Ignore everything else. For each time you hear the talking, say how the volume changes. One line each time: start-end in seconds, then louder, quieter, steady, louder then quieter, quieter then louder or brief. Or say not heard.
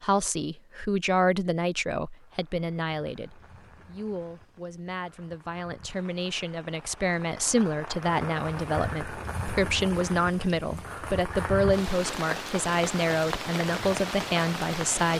0.0-15.1 quieter then louder.